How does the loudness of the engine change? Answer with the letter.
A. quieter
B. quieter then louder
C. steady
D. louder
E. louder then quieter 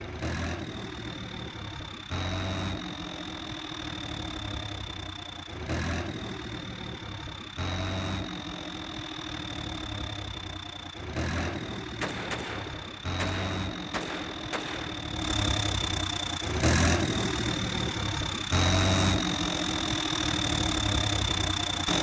D.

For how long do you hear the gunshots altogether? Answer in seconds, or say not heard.
4 s.